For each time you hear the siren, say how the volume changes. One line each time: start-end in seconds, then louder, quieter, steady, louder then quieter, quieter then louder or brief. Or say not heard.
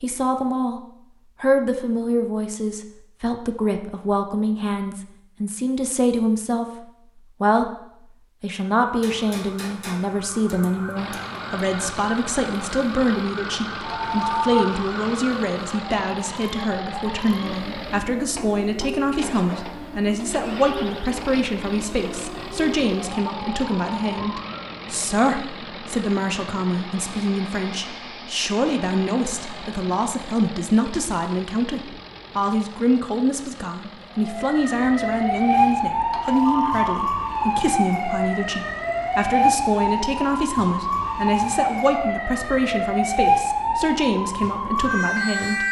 8.8-24.8 steady
34.1-45.6 steady.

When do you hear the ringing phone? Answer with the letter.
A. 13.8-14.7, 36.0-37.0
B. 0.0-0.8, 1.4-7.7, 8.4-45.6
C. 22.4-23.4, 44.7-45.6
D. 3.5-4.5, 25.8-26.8
A.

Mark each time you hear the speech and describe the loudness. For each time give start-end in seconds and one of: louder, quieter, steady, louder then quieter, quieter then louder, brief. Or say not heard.
0.0-0.8 brief
1.4-7.7 steady
8.4-45.6 steady.